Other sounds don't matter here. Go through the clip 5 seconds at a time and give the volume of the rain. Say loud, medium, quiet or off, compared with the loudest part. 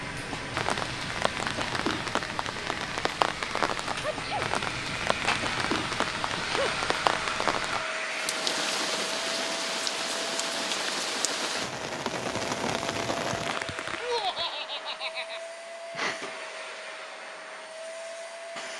loud, loud, loud, off.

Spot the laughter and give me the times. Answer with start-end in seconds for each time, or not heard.
13.9-15.4.